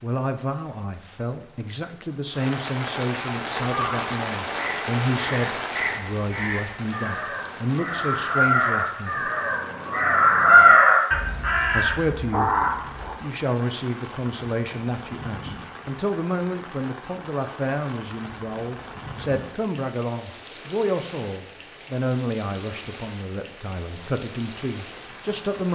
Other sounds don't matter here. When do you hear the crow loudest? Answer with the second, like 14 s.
11 s.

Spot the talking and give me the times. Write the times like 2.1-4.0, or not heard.
0.0-9.3, 11.7-12.6, 13.2-25.7.